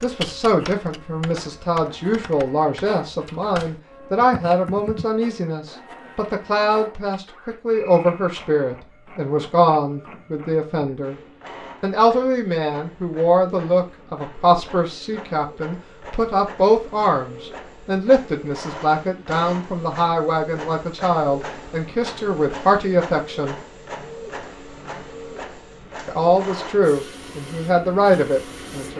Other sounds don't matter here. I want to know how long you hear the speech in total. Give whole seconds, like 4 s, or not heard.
26 s.